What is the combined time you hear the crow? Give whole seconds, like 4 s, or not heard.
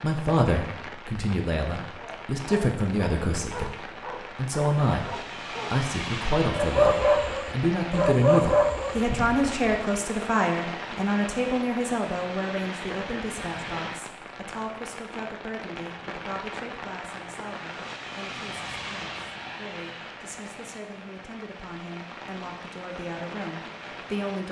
not heard.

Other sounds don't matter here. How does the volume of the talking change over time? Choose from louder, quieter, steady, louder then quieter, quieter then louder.
quieter.